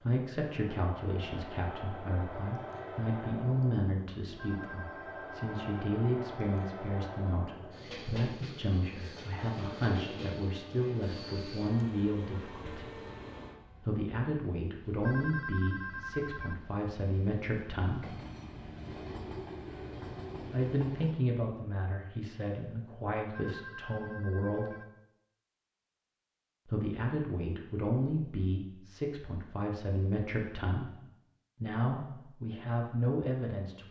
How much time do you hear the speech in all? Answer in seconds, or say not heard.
28 s.